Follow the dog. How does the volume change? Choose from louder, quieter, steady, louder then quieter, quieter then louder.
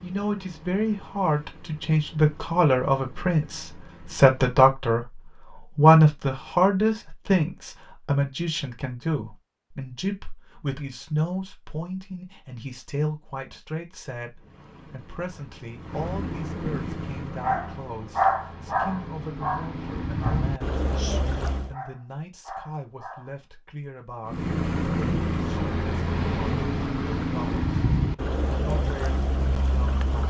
quieter.